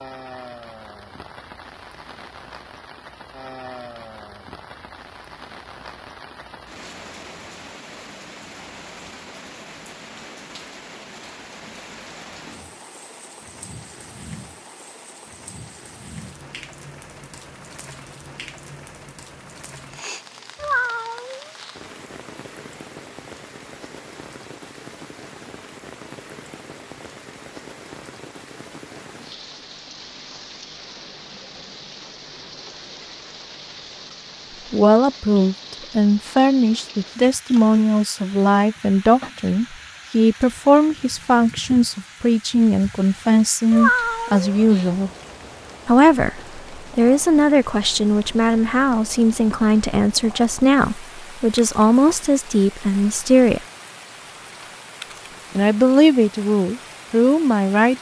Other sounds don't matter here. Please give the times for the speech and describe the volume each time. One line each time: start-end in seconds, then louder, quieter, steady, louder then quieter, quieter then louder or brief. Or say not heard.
34.7-45.1 steady
45.9-53.6 steady
55.5-57.9 brief.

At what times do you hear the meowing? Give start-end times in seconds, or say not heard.
20.6-21.8, 43.7-45.0.